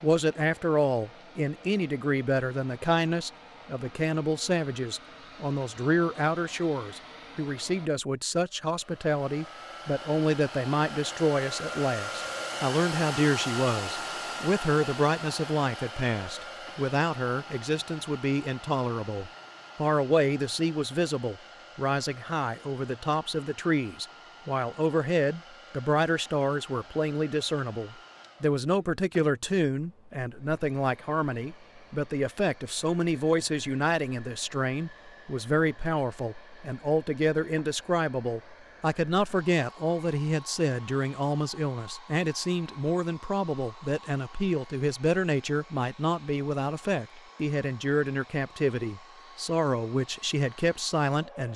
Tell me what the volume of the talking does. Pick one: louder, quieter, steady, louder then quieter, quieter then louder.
steady.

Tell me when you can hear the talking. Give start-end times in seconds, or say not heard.
0.0-51.5.